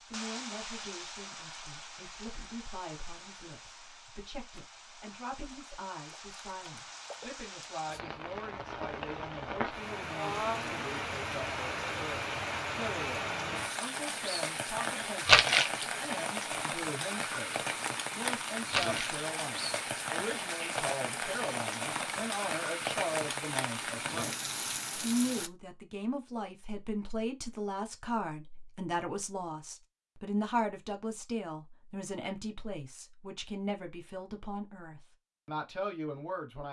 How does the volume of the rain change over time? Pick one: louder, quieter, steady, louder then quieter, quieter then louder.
louder.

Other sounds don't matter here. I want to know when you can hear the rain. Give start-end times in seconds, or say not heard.
0.0-25.5.